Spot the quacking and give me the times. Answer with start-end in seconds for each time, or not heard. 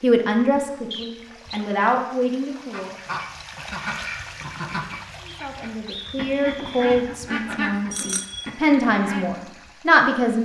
2.7-9.6.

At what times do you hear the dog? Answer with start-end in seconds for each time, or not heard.
not heard.